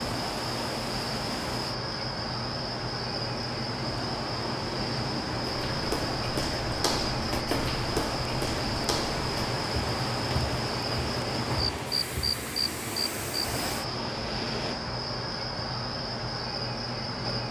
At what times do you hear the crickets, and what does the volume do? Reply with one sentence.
The crickets can be heard from 0.0 to 17.4 s, at a steady volume.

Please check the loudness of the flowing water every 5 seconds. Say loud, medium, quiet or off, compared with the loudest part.
loud, loud, loud, off.